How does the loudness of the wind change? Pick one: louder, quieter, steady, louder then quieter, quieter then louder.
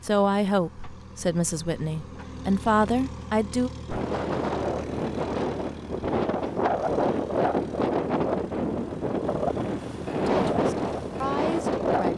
steady.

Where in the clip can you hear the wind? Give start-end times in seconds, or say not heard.
3.9-12.1.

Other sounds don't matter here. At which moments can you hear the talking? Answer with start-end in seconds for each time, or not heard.
0.0-3.7, 10.2-12.1.